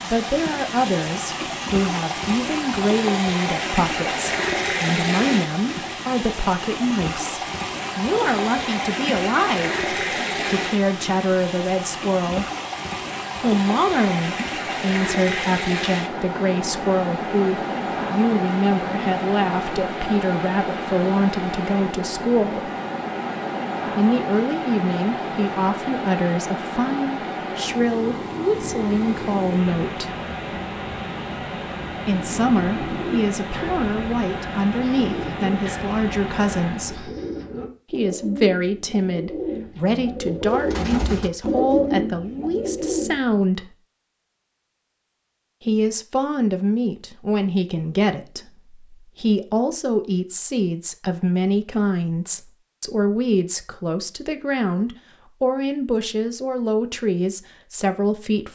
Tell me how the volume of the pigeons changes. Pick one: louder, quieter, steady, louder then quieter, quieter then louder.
louder.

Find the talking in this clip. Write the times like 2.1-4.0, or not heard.
0.0-12.4, 13.4-22.7, 23.9-30.1, 32.0-37.1, 37.9-43.8, 45.6-58.5.